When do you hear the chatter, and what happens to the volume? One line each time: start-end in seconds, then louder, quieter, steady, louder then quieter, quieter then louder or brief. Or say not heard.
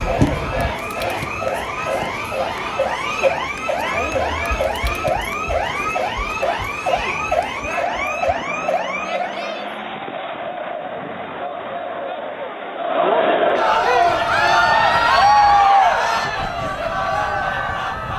0.0-18.1 louder.